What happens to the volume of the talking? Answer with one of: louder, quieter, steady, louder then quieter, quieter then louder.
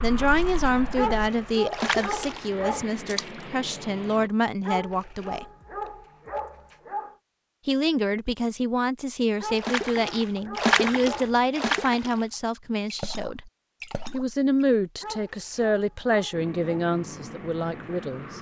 steady.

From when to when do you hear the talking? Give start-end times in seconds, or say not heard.
0.0-5.5, 7.7-13.5, 14.1-18.3.